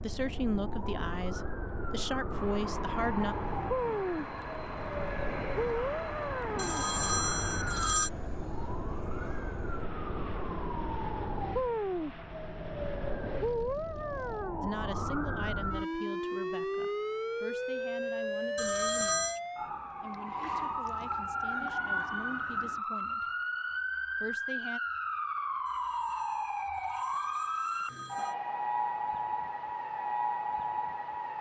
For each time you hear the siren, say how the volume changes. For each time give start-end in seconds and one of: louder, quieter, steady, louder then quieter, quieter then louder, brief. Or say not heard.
0.0-31.3 steady.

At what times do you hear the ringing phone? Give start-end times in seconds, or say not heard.
6.5-8.1, 18.6-19.4, 25.6-28.4.